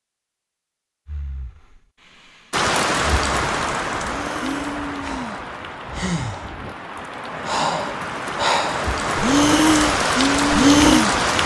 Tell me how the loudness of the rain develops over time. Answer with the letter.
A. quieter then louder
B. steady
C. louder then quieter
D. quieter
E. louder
A.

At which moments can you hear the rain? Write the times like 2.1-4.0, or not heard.
2.5-11.4.